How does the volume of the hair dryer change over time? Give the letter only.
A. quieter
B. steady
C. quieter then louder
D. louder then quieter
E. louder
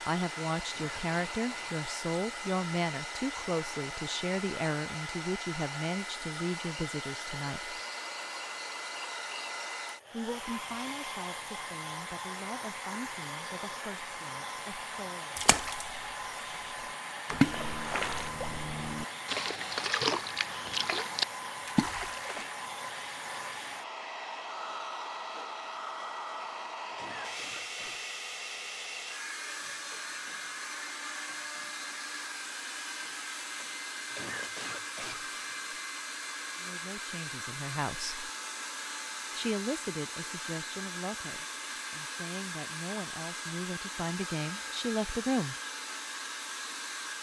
B.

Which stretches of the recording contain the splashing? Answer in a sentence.
The splashing can be heard from 15.3 to 15.9 s and from 17.2 to 22.5 s.